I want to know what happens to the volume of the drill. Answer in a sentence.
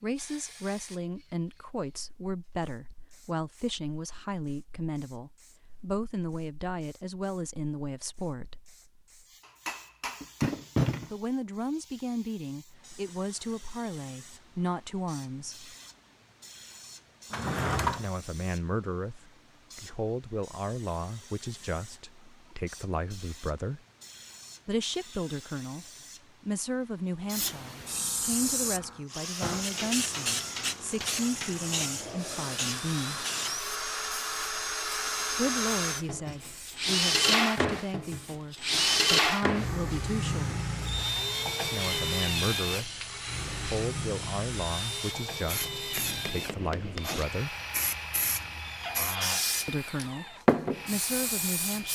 The loudness of the drill goes up, then down.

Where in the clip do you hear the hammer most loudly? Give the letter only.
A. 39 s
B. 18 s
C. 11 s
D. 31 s
C.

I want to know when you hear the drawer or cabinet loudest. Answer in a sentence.
The loudest moment of the drawer or cabinet is at 18 seconds.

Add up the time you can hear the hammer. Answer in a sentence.
You can hear the hammer for 5 seconds altogether.